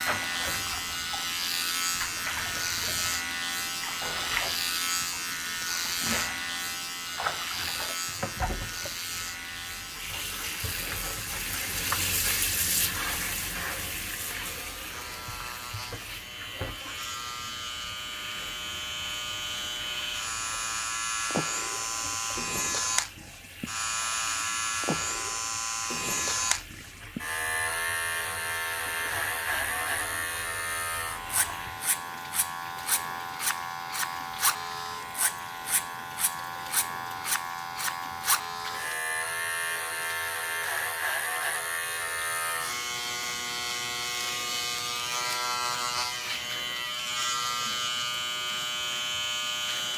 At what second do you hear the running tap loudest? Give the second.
12 s.